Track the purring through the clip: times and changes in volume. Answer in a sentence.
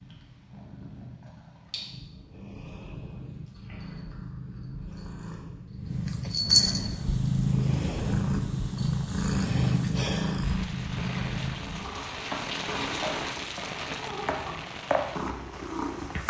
You can hear the purring from 0.0 to 16.2 s, getting louder then quieter.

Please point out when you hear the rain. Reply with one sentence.
The rain can be heard from 6.8 to 16.2 s.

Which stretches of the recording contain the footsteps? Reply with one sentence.
You can't hear the footsteps here.